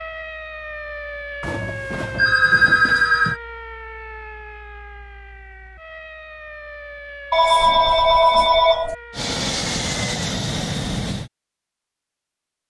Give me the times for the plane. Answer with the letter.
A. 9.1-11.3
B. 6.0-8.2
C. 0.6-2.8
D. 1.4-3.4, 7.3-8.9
A.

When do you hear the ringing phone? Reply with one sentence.
The ringing phone can be heard from 1.4 to 3.4 s and from 7.3 to 8.9 s.